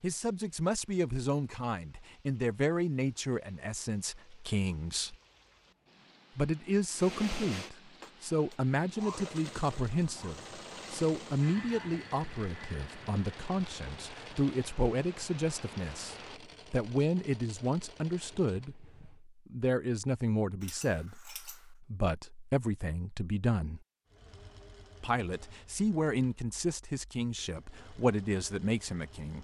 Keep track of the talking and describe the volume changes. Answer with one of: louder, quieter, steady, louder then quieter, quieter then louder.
steady.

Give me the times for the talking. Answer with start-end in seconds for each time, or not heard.
0.0-5.2, 6.3-23.8, 25.0-29.4.